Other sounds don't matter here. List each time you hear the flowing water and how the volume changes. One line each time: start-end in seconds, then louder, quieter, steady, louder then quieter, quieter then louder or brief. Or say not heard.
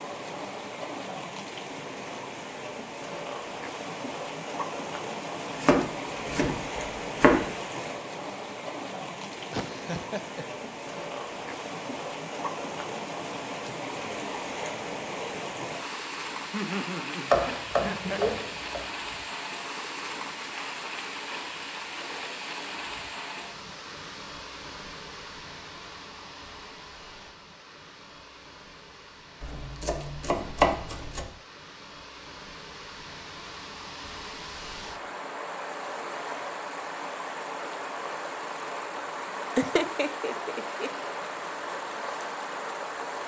0.0-43.2 quieter then louder.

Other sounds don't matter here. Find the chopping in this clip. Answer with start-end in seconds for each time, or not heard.
5.5-7.5, 17.3-18.8, 29.4-31.2.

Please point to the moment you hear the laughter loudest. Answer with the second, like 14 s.
40 s.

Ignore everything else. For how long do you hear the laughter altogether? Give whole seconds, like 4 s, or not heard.
4 s.